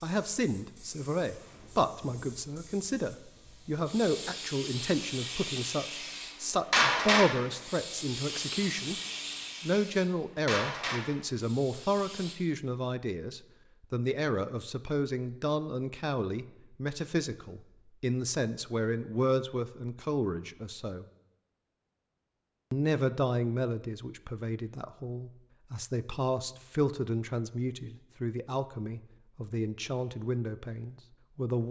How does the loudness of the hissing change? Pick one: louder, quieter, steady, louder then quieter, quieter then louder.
louder then quieter.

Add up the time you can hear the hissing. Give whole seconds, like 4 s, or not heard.
12 s.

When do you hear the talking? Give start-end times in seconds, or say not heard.
0.0-9.0, 9.6-21.1, 22.7-31.6.